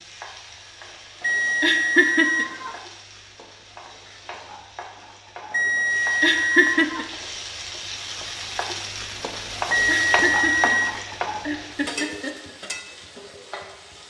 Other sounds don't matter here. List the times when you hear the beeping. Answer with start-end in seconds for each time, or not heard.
1.2-2.8, 5.5-7.1, 9.7-10.9.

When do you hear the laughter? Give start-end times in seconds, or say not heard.
1.6-2.5, 6.2-7.0, 9.8-12.6.